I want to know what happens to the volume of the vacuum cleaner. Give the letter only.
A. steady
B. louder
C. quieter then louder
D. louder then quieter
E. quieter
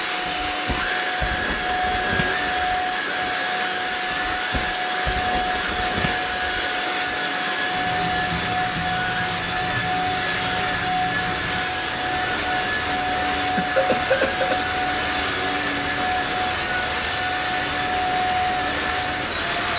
A.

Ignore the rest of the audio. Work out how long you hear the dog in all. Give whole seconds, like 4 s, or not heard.
not heard.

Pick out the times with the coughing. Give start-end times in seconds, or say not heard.
13.6-14.6.